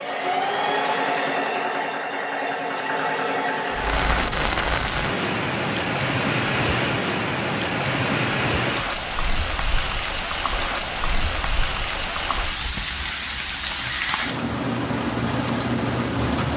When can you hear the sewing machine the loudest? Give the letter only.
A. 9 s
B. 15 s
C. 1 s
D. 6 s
C.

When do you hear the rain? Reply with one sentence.
You can hear the rain from 3.6 to 16.5 s.